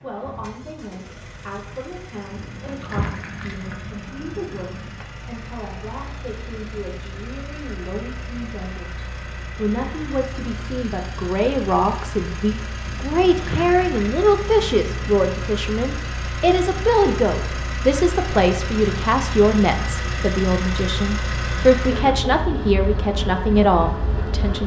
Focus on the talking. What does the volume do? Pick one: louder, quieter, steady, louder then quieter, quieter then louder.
louder.